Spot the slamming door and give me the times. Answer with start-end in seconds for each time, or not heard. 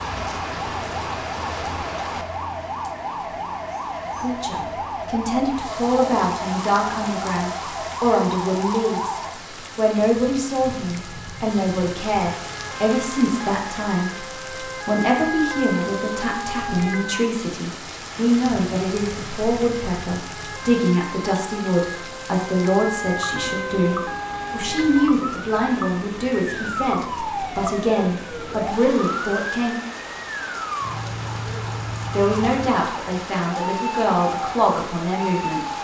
not heard.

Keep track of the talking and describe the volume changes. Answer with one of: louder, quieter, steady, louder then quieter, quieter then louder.
steady.